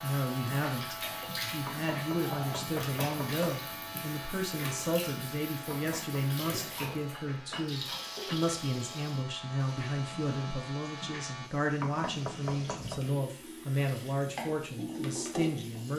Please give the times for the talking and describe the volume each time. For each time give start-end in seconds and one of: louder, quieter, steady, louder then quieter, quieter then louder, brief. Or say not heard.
0.0-15.9 steady.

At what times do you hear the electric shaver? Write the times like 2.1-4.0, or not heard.
0.0-11.5.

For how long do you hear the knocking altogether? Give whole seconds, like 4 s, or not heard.
4 s.